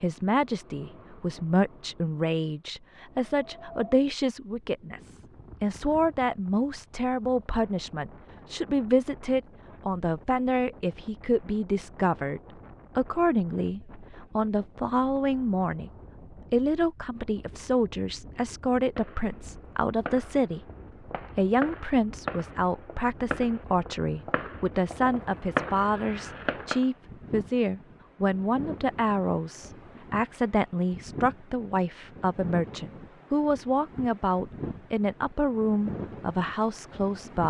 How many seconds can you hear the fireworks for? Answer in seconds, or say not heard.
8 s.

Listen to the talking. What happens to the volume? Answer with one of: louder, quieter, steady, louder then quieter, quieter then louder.
steady.